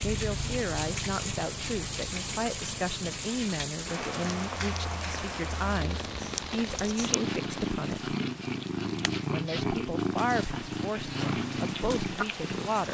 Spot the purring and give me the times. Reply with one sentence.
The purring can be heard from 0.0 to 12.8 s.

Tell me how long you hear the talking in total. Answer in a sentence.
The talking can be heard for 12 seconds in total.